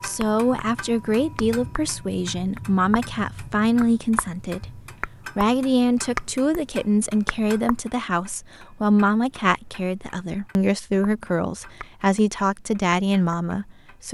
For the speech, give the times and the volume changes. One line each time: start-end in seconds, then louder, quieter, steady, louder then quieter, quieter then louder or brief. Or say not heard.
0.0-14.0 steady.